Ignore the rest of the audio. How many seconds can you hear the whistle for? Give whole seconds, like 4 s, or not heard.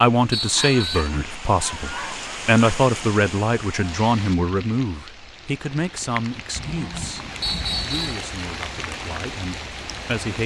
2 s.